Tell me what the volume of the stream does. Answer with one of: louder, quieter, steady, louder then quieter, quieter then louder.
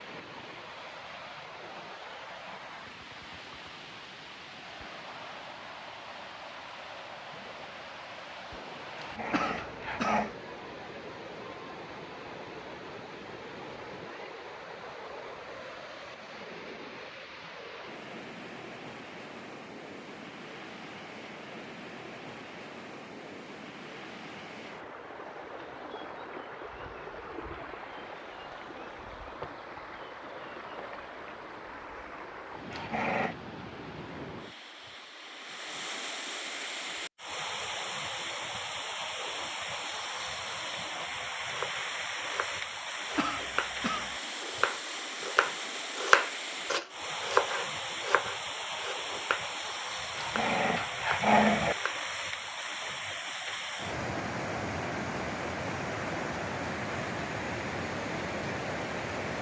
louder.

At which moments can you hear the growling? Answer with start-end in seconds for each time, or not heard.
8.9-10.3, 32.7-33.4, 50.1-51.8.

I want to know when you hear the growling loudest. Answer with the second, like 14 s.
51 s.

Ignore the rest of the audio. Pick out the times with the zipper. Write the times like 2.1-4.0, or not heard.
not heard.